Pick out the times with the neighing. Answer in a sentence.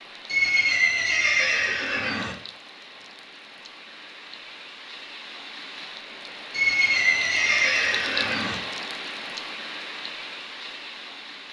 You can hear the neighing from 0.2 to 2.4 s and from 6.5 to 8.6 s.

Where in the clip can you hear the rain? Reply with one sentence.
You can hear the rain from 0.0 to 11.4 s.